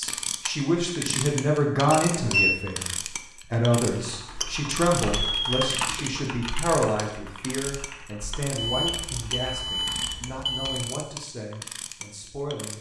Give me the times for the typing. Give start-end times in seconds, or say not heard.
3.8-10.0.